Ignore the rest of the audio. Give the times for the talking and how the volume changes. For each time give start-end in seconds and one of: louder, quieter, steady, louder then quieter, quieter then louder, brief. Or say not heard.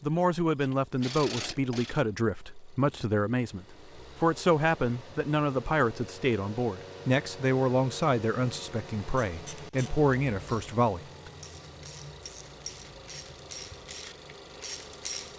0.0-11.3 steady.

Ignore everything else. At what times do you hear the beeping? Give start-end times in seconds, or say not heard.
not heard.